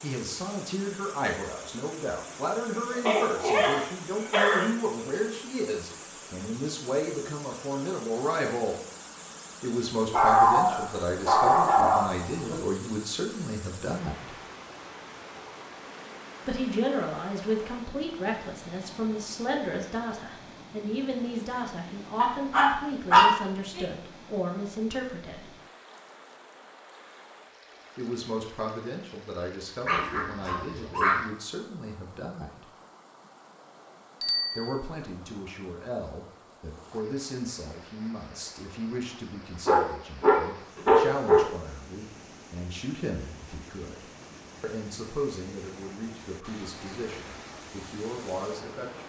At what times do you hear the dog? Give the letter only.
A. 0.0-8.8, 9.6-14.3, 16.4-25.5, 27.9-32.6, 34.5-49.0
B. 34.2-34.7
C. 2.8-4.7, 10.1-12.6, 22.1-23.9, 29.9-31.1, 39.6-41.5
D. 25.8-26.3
C.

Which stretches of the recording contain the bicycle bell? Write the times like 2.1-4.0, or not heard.
34.2-34.7.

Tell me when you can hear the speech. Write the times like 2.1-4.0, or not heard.
0.0-8.8, 9.6-14.3, 16.4-25.5, 27.9-32.6, 34.5-49.0.